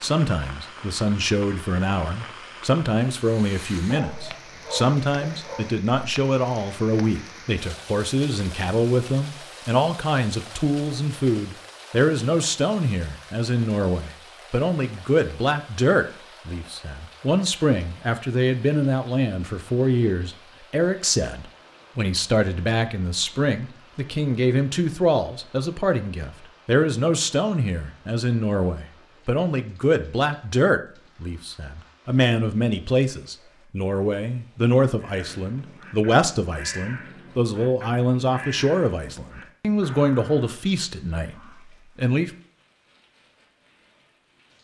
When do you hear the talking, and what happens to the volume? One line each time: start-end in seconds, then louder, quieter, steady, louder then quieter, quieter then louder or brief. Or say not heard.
0.0-42.3 steady.